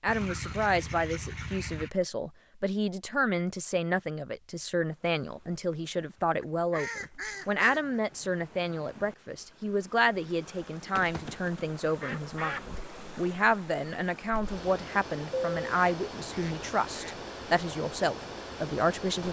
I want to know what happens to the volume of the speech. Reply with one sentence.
The loudness of the speech stays about the same.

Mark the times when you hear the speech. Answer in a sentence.
You can hear the speech from 0.0 to 19.2 s.